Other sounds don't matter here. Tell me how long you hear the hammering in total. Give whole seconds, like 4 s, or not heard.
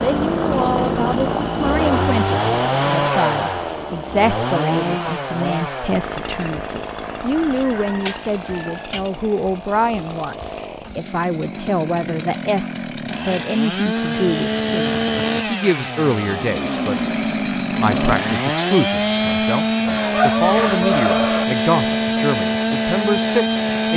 not heard.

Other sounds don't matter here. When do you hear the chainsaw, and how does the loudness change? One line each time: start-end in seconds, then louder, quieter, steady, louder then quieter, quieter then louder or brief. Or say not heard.
0.0-23.9 quieter then louder.